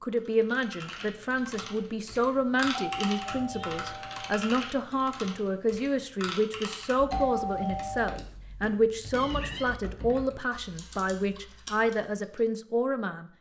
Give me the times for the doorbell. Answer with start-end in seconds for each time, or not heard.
2.8-4.3, 7.1-8.2.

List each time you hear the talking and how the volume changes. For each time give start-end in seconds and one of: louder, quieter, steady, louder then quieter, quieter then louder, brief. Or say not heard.
0.0-13.3 steady.